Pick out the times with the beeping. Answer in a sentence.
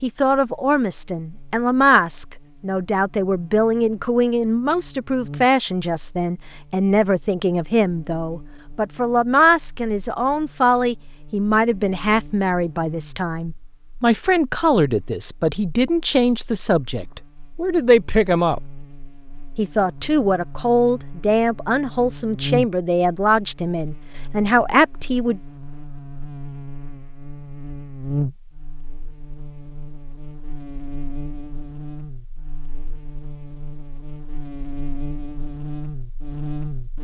The beeping can't be heard in this clip.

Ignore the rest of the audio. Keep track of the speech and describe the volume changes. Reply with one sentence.
The volume of the speech stays about the same.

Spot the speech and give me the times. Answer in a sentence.
You can hear the speech from 0.0 to 18.6 s and from 19.6 to 25.4 s.